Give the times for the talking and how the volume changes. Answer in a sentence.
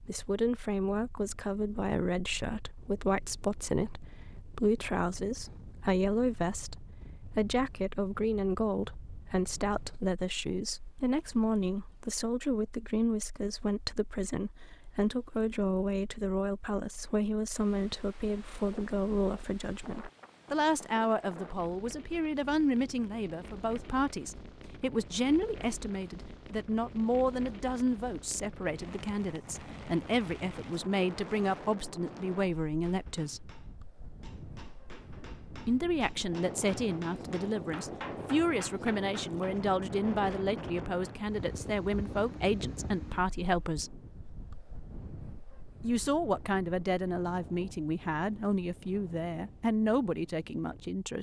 The talking can be heard from 0.0 to 33.5 s, at a steady volume; from 35.6 to 44.0 s, at a steady volume; and from 45.8 to 51.1 s, at a steady volume.